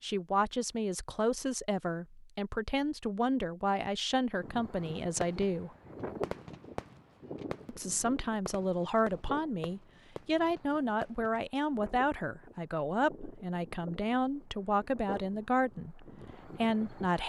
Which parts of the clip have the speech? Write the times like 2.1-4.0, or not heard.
0.0-5.8, 7.7-17.2.